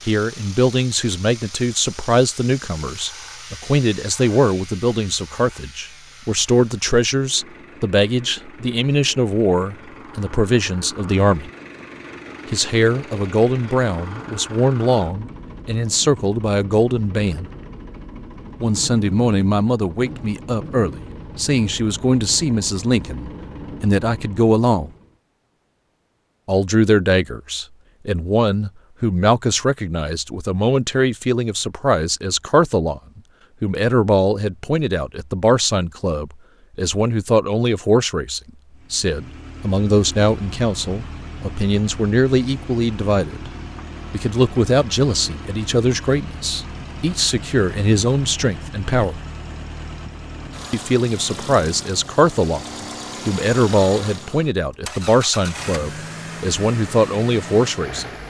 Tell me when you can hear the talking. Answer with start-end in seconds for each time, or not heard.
0.1-11.5, 12.5-17.5, 18.6-24.9, 26.4-43.5, 44.1-49.2, 50.7-58.0.